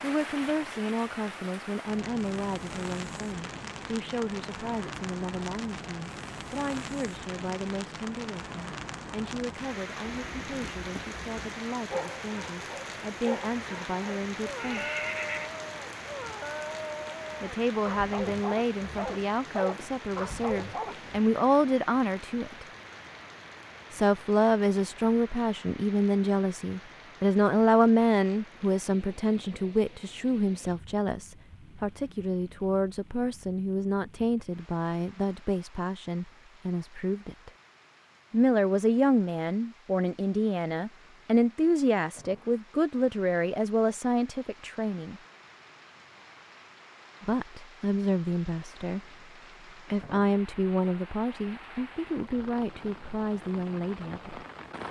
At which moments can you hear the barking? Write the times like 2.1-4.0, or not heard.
10.0-21.2.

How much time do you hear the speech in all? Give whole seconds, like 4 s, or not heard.
47 s.